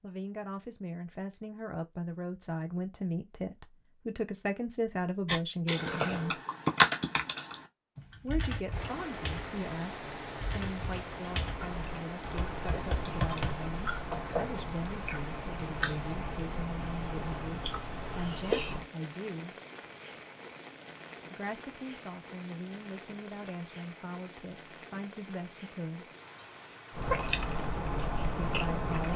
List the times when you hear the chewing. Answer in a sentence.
The chewing can be heard from 11.4 to 18.9 s and from 26.9 to 29.1 s.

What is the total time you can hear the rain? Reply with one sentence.
The rain can be heard for 20 seconds in total.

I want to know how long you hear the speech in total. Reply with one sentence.
You can hear the speech for 23 seconds altogether.